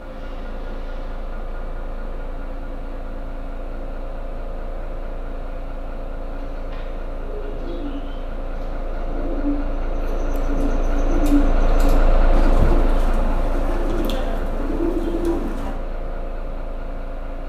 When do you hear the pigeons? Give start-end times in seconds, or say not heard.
6.3-15.8.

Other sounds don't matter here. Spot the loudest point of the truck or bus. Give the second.
12 s.